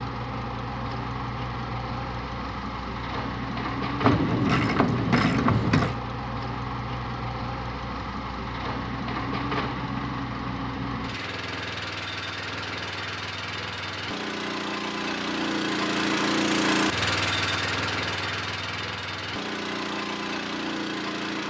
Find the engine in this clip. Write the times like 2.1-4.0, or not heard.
0.0-21.4.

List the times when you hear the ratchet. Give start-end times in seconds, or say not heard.
4.0-6.0.